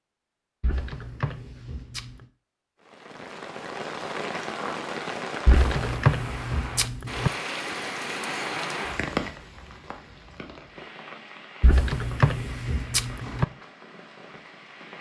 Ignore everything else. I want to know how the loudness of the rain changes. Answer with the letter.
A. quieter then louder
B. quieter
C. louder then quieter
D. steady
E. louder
B.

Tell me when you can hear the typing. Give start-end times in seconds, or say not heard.
0.6-2.2, 5.5-7.3, 11.6-13.4.